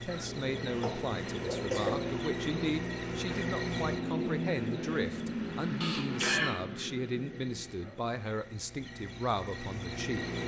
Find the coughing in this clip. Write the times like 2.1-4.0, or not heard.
0.8-2.1, 5.8-6.5.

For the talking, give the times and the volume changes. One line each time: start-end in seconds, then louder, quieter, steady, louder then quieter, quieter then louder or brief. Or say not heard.
0.0-10.2 steady.